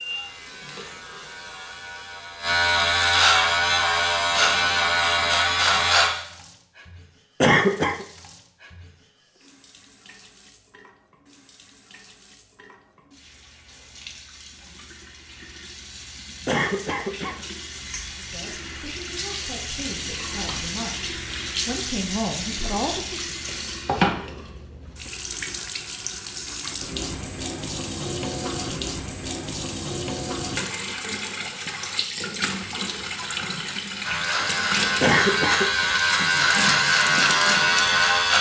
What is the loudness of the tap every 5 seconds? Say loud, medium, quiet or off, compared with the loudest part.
quiet, quiet, quiet, medium, loud, loud, loud, loud.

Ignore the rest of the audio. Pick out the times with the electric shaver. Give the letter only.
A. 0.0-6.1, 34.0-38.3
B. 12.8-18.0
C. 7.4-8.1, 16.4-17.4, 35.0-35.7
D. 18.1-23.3
A.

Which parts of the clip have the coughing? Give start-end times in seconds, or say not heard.
7.4-8.1, 16.4-17.4, 35.0-35.7.